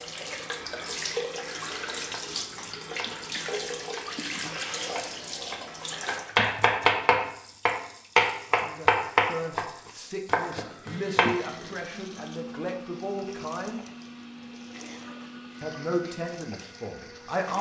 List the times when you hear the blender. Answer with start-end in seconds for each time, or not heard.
10.8-17.5.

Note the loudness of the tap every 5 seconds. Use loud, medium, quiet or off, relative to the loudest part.
loud, medium, quiet, quiet.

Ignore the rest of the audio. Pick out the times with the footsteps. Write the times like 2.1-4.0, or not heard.
not heard.